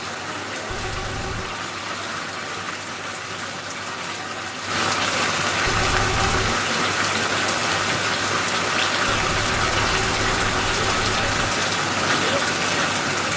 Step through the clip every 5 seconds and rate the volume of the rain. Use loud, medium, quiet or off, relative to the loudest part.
medium, loud, loud.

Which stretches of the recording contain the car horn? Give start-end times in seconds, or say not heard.
0.7-1.6, 5.7-6.6, 9.1-11.3.